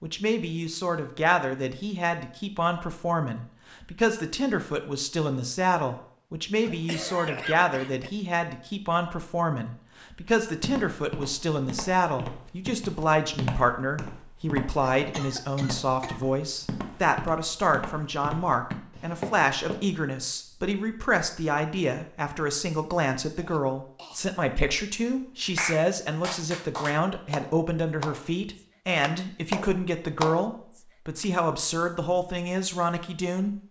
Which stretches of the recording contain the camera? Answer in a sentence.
You can't hear the camera here.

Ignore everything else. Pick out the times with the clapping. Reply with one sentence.
You can hear the clapping from 25.6 to 31.2 s.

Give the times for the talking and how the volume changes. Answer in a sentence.
The talking can be heard from 0.0 to 33.6 s, at a steady volume.